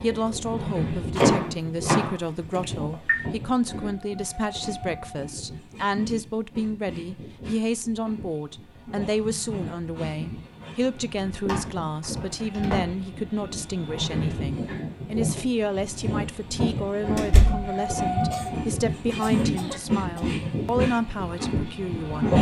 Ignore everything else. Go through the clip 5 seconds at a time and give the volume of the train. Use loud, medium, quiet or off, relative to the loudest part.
medium, quiet, medium, loud, loud.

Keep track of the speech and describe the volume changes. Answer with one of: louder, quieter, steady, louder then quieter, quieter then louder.
steady.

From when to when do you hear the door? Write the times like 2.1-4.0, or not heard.
1.1-3.1, 11.4-12.8, 17.1-17.7.